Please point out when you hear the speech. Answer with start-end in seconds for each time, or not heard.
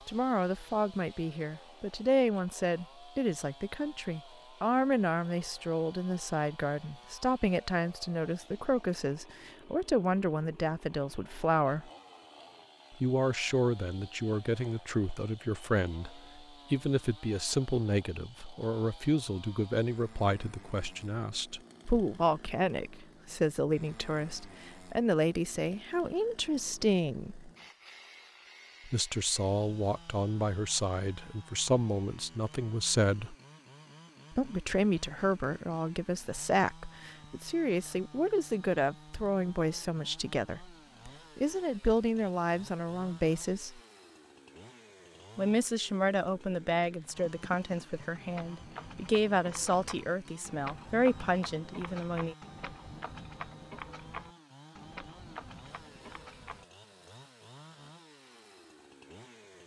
0.1-11.9, 13.0-27.5, 28.9-33.4, 34.3-43.8, 45.4-52.4.